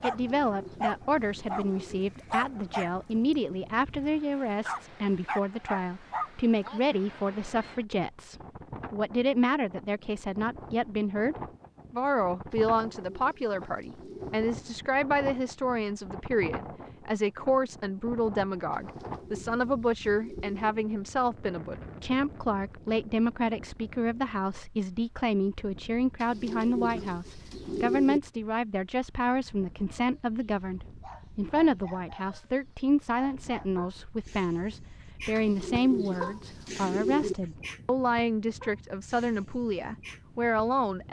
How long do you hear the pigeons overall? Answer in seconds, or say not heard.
10 s.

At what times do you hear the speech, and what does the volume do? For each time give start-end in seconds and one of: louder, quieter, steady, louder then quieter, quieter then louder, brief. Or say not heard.
0.0-41.0 steady.